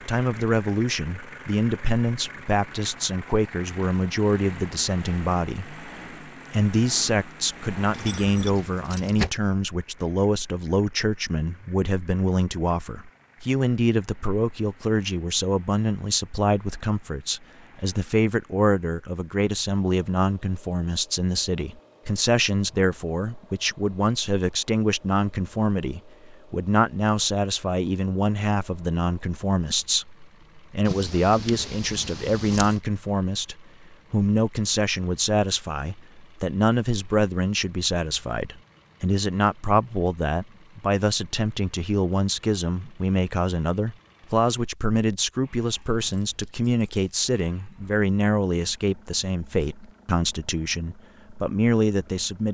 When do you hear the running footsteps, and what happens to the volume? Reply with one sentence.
The running footsteps can't be heard in this clip.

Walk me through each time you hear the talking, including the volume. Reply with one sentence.
You can hear the talking from 0.1 to 5.8 s, at a steady volume; and from 6.5 to 52.4 s, at a steady volume.